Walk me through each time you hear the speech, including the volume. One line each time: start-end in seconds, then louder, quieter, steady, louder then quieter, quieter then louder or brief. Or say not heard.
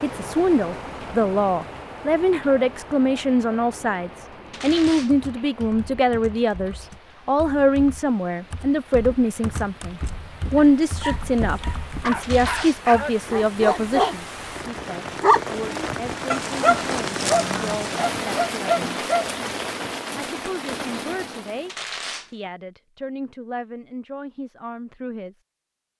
0.0-18.9 quieter
20.2-25.4 steady.